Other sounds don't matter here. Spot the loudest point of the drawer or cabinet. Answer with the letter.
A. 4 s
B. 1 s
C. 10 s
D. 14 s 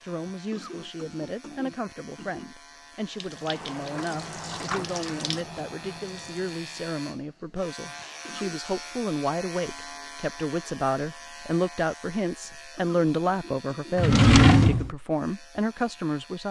D.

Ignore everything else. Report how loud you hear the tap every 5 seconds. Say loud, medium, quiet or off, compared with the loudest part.
loud, loud, off, off.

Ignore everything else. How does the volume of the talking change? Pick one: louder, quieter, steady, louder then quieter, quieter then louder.
louder.